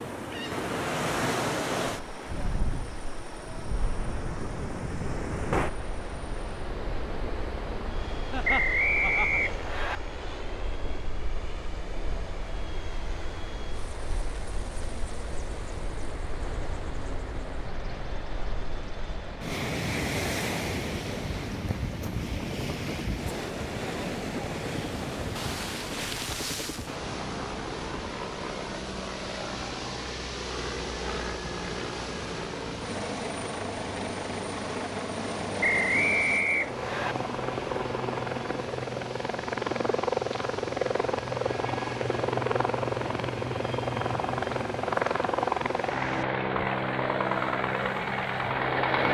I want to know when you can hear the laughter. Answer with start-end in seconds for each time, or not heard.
8.3-9.4.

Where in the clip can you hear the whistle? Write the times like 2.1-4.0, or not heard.
8.4-10.0, 35.6-37.1.